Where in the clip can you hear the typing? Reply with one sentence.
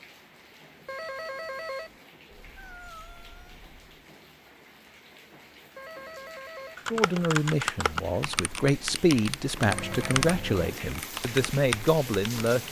The typing can be heard from 6.8 to 12.5 s.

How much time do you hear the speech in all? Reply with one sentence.
The speech can be heard for 6 seconds in total.